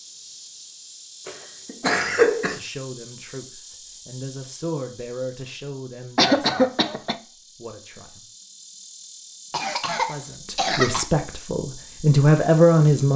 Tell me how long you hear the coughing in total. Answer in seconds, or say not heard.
4 s.